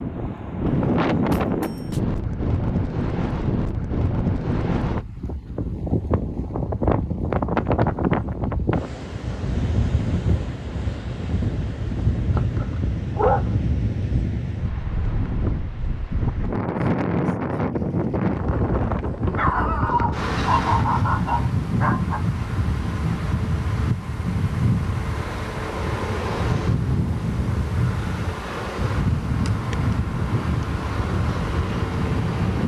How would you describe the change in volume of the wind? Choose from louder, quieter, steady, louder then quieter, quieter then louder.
steady.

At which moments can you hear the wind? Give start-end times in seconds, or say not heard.
0.0-32.6.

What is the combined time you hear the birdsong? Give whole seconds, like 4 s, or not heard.
not heard.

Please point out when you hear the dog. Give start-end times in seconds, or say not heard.
12.3-13.4, 19.2-22.2.